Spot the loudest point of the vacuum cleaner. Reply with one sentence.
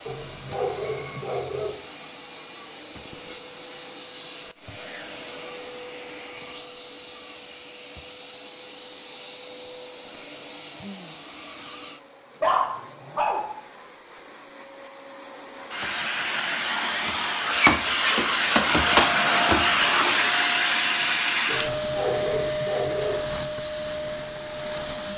The volume of the vacuum cleaner peaks at 19 seconds.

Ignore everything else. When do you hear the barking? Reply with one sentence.
You can hear the barking from 0.1 to 1.7 s, from 12.4 to 13.5 s and from 21.4 to 23.2 s.